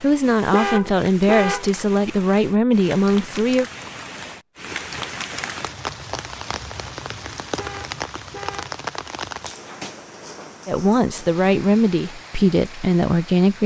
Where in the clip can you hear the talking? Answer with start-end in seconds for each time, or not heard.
0.0-3.6, 10.7-13.6.